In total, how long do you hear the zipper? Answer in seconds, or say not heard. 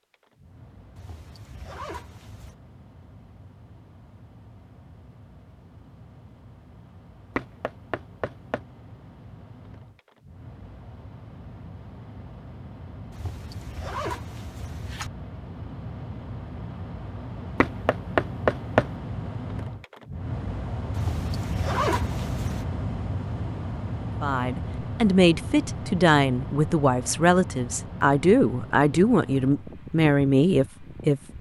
5 s.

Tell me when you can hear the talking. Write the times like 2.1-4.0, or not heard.
24.2-31.2.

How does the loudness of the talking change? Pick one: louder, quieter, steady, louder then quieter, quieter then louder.
steady.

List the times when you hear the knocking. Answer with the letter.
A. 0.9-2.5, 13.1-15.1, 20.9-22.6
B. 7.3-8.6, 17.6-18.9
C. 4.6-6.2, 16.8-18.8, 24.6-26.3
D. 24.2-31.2
B.